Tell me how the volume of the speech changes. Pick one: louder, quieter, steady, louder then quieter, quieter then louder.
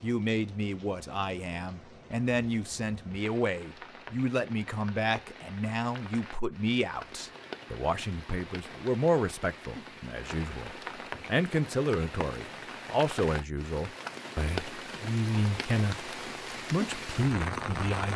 steady.